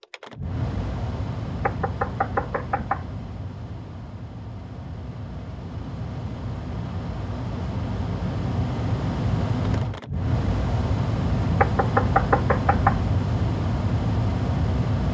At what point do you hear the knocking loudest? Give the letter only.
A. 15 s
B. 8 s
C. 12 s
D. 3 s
C.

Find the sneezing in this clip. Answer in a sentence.
The sneezing can't be heard in this clip.